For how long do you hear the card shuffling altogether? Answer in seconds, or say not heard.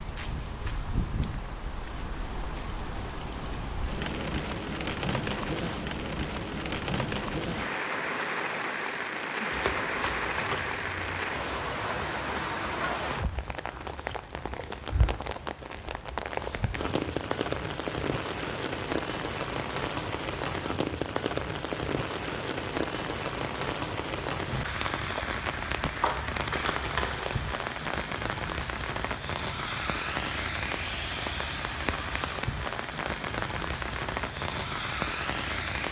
3 s.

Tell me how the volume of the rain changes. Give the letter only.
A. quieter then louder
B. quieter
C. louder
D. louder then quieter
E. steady
E.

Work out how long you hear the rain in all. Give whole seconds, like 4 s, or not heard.
36 s.